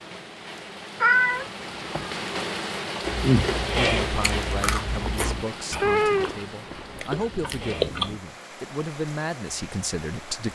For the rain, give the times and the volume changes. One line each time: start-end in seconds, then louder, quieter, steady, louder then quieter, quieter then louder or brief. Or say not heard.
0.0-10.4 louder then quieter.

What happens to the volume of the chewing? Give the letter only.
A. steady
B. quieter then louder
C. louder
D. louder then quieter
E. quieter
B.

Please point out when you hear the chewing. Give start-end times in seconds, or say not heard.
3.0-8.2.